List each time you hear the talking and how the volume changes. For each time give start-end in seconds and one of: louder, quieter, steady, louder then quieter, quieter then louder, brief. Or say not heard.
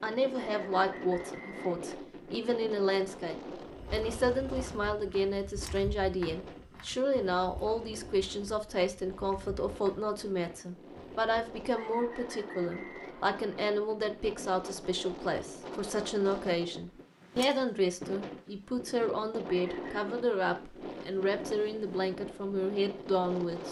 0.0-23.6 steady.